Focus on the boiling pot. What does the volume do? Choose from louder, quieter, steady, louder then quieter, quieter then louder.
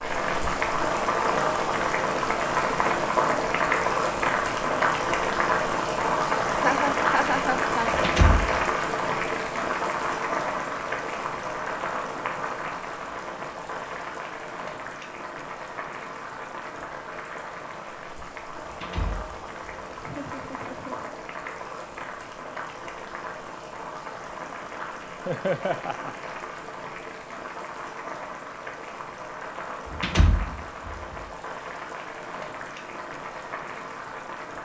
quieter.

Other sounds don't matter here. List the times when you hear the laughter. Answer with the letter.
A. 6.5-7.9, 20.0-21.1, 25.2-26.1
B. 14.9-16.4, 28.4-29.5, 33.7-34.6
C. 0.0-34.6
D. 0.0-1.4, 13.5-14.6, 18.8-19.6
A.